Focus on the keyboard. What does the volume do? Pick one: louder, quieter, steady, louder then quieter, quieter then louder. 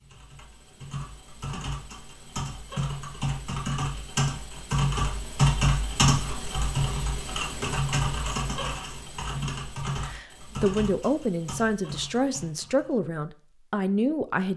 louder then quieter.